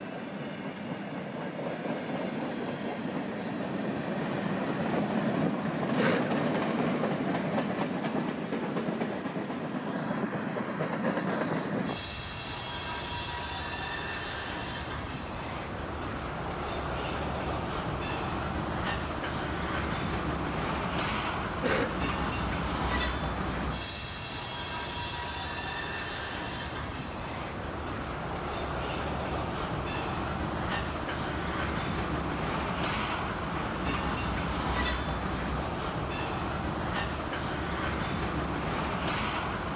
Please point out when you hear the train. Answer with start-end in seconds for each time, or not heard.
0.0-39.7.